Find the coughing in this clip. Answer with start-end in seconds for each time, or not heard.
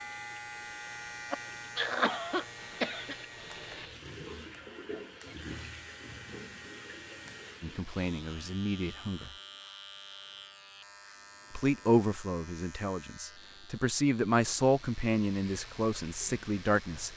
1.3-3.1.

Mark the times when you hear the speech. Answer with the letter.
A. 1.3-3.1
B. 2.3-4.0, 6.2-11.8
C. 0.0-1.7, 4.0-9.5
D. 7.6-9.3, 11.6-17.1
D.